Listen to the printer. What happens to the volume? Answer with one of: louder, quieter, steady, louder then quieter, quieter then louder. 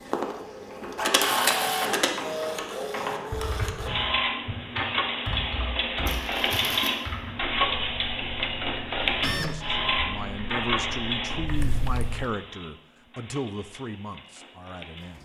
quieter.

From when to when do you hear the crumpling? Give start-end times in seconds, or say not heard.
6.0-7.0.